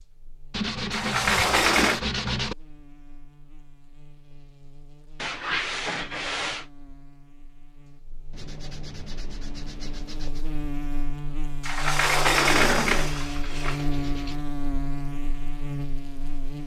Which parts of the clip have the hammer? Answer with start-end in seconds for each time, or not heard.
not heard.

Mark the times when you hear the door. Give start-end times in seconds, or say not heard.
0.9-2.0, 11.6-13.8.